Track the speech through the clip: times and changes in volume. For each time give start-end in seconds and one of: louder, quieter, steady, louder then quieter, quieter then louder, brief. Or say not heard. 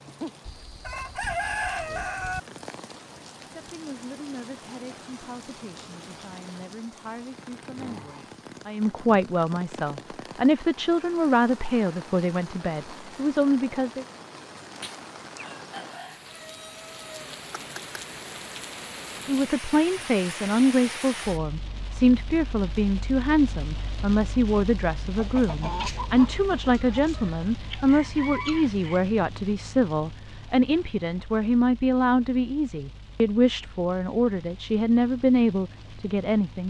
3.5-14.1 louder
19.2-36.6 steady.